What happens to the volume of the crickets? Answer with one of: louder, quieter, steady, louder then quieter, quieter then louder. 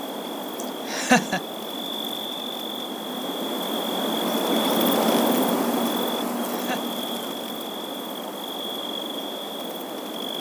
louder then quieter.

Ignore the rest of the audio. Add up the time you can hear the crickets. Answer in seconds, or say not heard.
10 s.